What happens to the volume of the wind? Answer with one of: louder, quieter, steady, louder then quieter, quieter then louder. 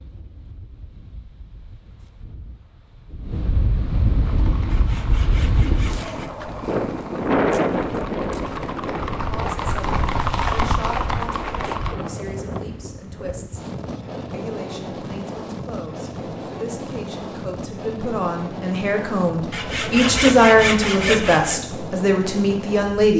louder then quieter.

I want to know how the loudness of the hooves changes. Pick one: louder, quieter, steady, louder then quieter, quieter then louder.
louder.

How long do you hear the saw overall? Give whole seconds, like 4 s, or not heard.
4 s.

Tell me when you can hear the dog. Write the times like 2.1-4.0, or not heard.
not heard.